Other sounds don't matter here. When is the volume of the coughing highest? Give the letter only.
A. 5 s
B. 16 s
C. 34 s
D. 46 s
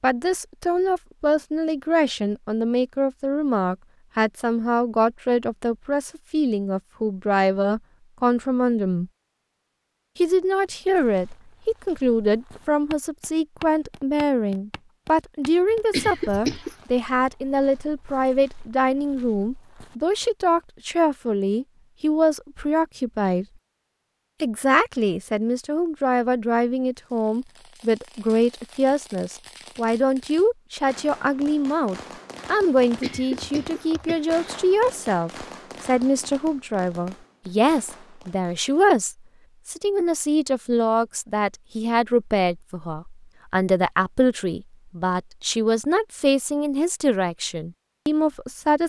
B.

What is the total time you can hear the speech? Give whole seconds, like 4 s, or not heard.
47 s.